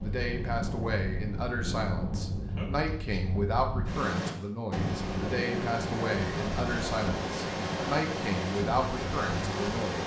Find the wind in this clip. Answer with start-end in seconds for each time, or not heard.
0.0-10.0.